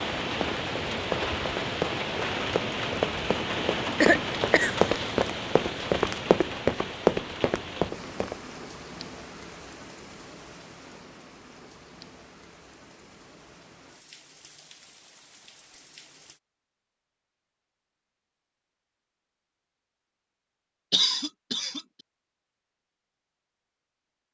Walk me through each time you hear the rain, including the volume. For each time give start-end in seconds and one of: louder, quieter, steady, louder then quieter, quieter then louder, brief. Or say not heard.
0.0-16.4 quieter.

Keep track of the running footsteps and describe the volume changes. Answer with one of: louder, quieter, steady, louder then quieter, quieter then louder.
louder.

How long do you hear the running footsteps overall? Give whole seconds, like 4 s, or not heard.
8 s.